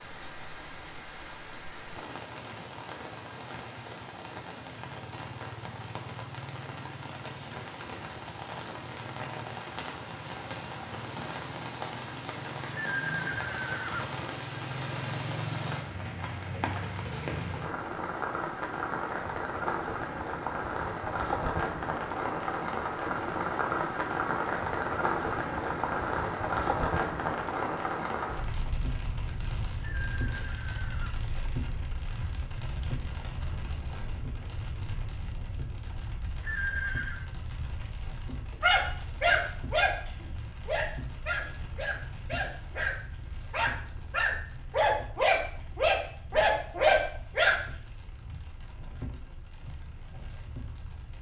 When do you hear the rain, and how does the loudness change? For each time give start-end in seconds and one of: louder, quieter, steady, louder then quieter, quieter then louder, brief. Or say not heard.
0.0-51.1 louder then quieter.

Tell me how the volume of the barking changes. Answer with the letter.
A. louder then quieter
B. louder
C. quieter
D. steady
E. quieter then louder
E.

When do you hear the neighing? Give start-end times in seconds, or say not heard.
12.8-14.1, 29.8-31.2, 36.4-37.2.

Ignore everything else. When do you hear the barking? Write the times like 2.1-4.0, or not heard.
38.6-47.5.